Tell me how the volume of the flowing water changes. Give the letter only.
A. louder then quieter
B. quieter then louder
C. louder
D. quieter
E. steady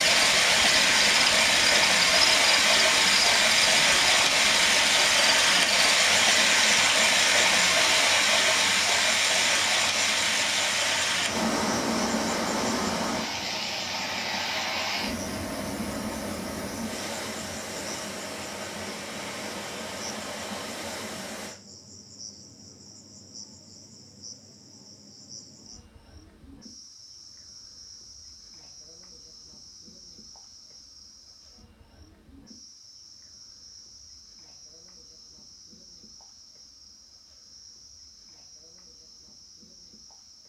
D.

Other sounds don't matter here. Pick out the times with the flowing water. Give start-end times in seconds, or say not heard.
0.0-21.6.